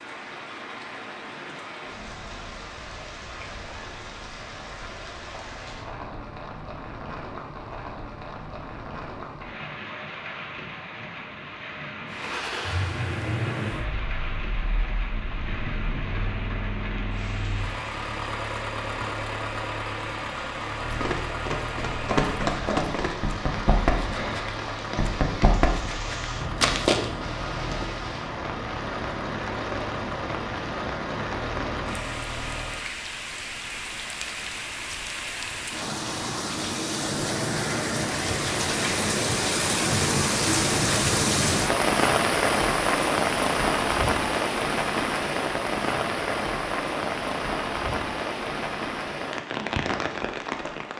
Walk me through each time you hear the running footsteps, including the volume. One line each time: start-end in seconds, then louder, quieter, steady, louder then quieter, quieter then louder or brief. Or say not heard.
20.9-27.1 steady.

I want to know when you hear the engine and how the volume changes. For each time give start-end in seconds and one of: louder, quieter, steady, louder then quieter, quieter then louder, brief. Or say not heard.
12.1-32.9 steady.